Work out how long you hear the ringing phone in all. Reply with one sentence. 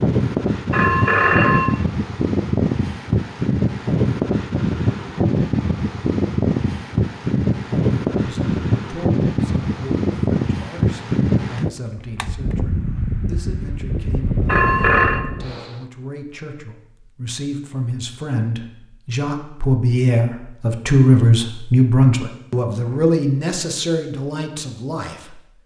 You can hear the ringing phone for 2 seconds altogether.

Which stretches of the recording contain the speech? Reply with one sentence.
The speech can be heard from 8.1 to 25.6 s.